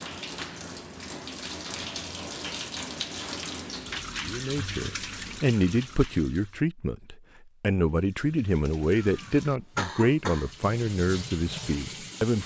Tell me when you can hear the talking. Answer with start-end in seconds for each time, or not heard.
4.2-12.4.